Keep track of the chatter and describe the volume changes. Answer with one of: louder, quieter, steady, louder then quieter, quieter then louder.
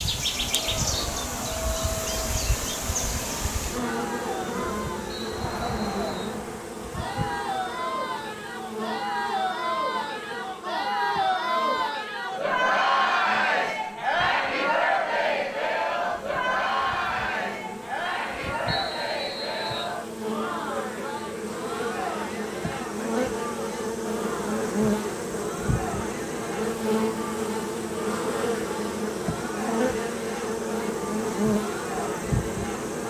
louder then quieter.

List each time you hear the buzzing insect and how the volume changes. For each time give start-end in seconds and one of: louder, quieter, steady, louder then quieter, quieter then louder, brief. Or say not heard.
0.0-33.0 quieter then louder.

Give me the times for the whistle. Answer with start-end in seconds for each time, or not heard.
5.0-6.4, 18.6-19.9.